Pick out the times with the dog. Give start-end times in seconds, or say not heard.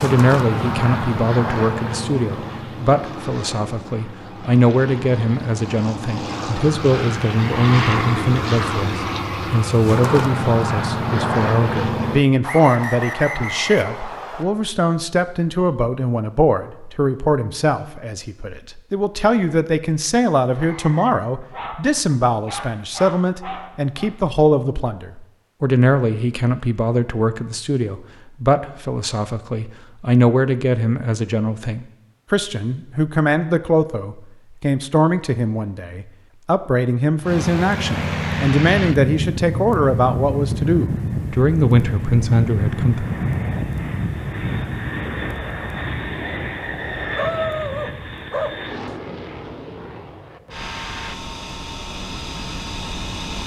21.4-24.1, 47.0-49.0.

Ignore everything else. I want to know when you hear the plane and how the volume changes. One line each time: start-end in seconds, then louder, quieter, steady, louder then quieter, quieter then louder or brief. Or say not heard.
0.0-12.2 quieter then louder
37.2-53.4 quieter.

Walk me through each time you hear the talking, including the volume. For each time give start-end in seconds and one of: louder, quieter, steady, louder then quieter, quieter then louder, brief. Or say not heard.
0.0-43.1 steady.